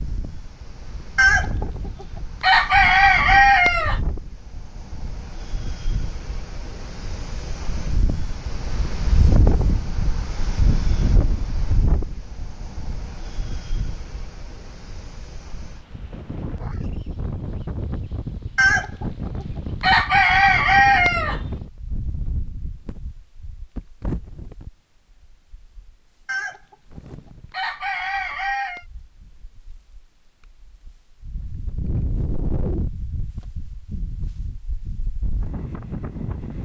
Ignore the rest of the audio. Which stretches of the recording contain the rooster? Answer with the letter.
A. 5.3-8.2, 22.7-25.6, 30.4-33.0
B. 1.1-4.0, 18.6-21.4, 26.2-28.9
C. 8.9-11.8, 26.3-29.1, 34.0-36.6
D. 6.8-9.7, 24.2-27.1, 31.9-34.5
B.